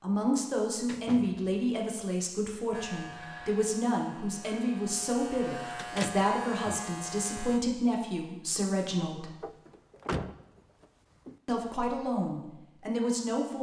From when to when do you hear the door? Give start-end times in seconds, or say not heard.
0.4-1.7, 5.8-6.8, 9.4-11.3.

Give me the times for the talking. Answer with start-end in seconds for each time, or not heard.
0.0-9.3, 11.4-13.5.